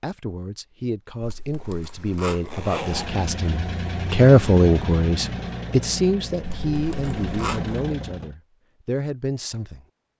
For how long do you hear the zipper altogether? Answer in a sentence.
You can hear the zipper for 3 seconds altogether.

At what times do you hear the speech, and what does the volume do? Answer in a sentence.
The speech can be heard from 0.0 to 9.8 s, getting louder then quieter.